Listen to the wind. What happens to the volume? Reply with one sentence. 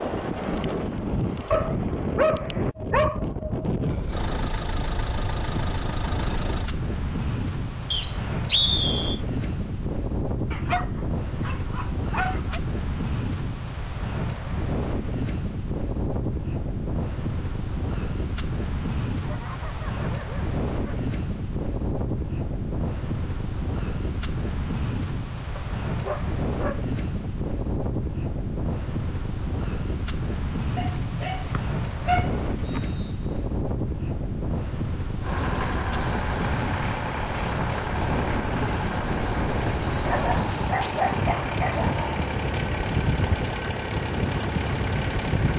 The volume of the wind stays about the same.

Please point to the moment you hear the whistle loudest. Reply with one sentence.
The loudest moment of the whistle is at 9 seconds.